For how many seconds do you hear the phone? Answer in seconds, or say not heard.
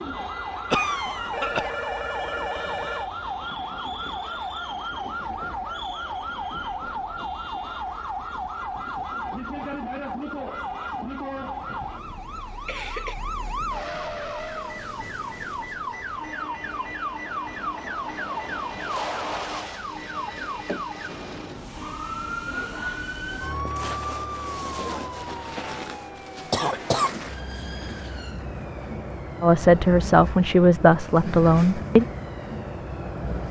2 s.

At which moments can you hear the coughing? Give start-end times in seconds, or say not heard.
0.7-1.7, 11.9-13.2, 26.5-28.0.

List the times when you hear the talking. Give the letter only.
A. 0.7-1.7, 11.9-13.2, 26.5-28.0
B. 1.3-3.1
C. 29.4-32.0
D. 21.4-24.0
C.